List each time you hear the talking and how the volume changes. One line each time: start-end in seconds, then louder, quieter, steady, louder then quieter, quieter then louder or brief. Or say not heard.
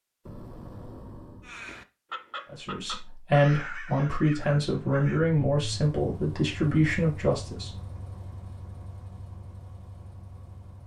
2.5-7.7 steady.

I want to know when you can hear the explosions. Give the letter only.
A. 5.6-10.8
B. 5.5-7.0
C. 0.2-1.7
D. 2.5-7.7
C.